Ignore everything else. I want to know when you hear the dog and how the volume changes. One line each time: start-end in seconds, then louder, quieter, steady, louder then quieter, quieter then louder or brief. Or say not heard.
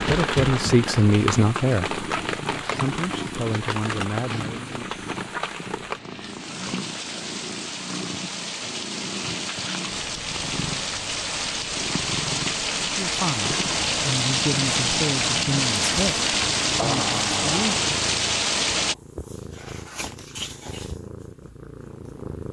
not heard.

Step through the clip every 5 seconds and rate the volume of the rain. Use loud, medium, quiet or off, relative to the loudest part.
medium, medium, loud, loud, off.